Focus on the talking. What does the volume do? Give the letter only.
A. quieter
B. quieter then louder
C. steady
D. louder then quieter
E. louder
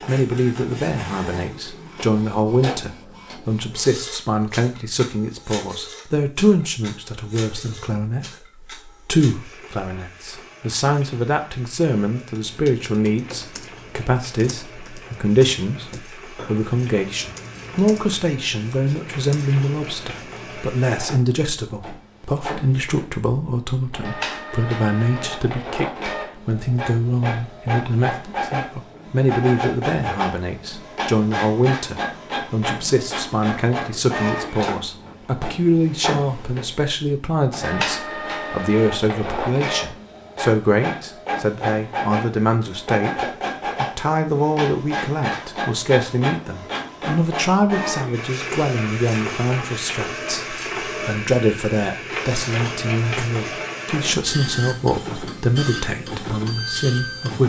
C.